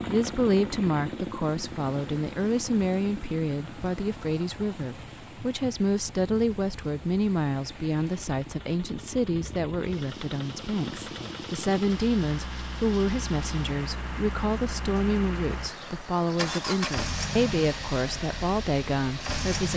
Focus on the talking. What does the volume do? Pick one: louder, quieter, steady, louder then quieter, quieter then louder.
steady.